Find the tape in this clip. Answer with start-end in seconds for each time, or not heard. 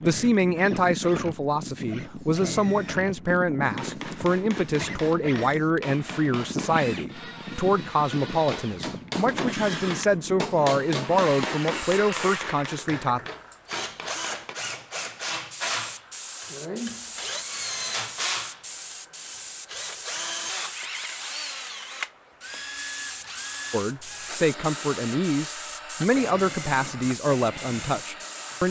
not heard.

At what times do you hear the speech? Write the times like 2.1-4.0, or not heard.
0.0-13.2, 23.7-28.6.